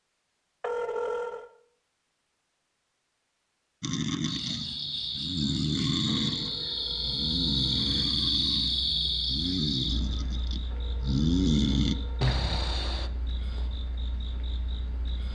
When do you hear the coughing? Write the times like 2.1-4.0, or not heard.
not heard.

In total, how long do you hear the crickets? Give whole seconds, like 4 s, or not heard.
11 s.